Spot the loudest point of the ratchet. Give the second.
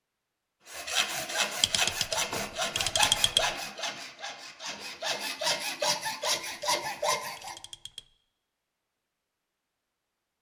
3 s.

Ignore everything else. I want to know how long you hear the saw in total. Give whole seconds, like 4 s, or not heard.
7 s.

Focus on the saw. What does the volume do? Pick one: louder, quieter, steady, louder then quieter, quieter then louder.
quieter then louder.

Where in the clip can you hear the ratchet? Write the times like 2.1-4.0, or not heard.
1.6-3.5, 6.4-8.2.